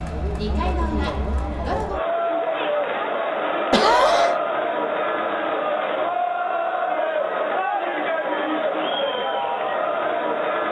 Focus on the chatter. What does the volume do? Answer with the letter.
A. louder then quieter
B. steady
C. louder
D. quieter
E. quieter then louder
B.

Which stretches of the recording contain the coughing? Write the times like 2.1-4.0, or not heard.
3.7-4.4.